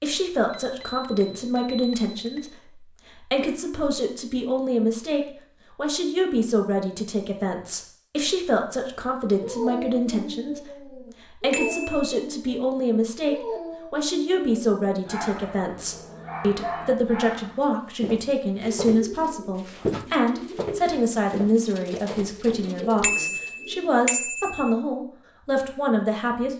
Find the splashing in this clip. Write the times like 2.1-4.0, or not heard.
not heard.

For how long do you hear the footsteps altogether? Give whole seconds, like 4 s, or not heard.
5 s.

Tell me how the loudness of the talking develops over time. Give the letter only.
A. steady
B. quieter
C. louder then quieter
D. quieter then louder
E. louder
A.